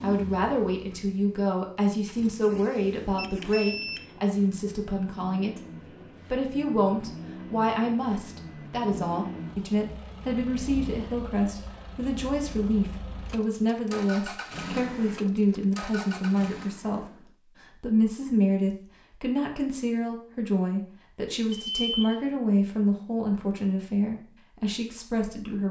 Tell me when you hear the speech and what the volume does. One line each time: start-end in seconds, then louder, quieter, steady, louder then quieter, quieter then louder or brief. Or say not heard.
0.0-5.6 steady
6.3-25.6 steady.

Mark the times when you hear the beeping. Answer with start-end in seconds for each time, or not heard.
3.1-4.0, 21.5-22.2.